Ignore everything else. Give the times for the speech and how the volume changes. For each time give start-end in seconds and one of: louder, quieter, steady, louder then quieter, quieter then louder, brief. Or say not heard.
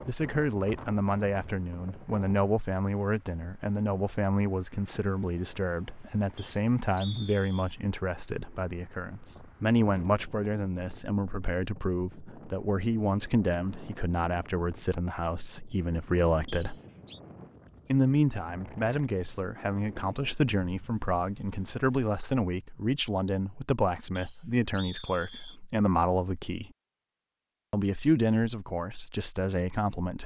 0.1-16.8 steady
17.9-26.7 steady
27.7-30.2 brief.